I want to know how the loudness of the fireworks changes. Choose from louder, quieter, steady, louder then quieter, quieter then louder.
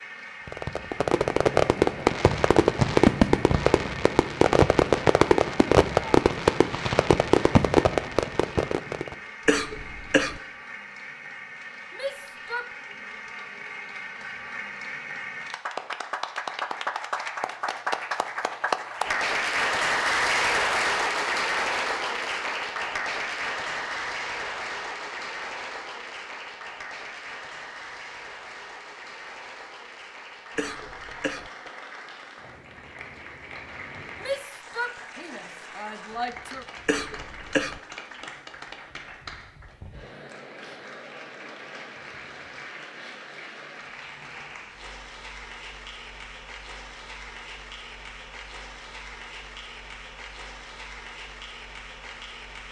steady.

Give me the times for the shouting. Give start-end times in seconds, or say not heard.
11.9-12.8, 34.1-36.6.